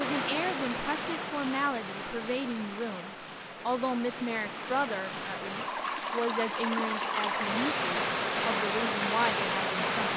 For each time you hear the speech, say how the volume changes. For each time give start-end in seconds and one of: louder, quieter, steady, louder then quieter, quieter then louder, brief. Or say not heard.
0.0-10.1 steady.